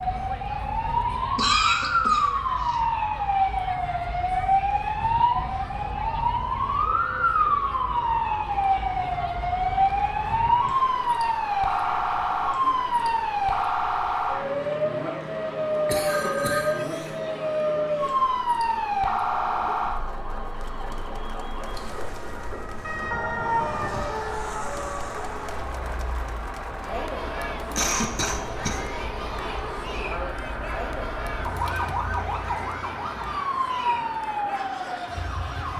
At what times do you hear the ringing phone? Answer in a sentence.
The ringing phone can be heard from 16.1 to 17.0 s.